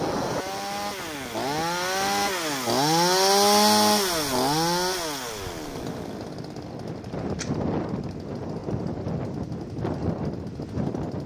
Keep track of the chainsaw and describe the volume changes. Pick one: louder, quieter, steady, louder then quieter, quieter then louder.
louder then quieter.